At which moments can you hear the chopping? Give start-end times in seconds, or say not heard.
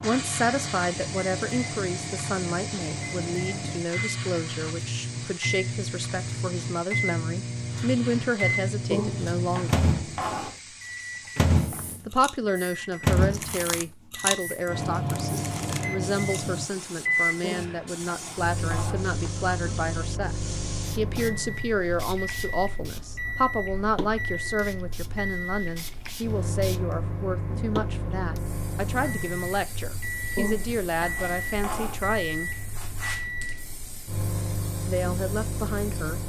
8.9-10.6, 17.4-19.1, 30.4-32.0.